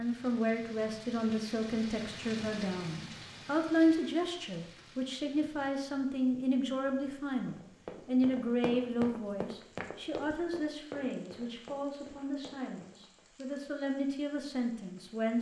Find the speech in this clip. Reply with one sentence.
You can hear the speech from 0.0 to 15.3 s.